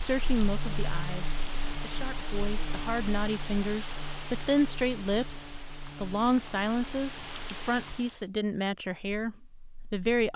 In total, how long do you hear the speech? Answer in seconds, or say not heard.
10 s.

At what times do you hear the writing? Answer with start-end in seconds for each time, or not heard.
not heard.